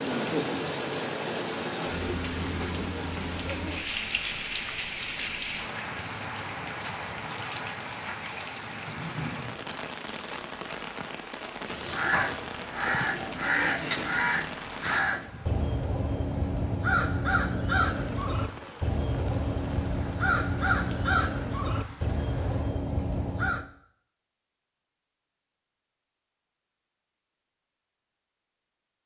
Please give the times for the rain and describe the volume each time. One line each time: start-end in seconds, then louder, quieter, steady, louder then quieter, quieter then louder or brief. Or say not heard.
0.0-22.8 quieter.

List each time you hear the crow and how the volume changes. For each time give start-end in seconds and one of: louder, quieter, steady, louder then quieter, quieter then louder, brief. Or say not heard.
11.6-23.6 steady.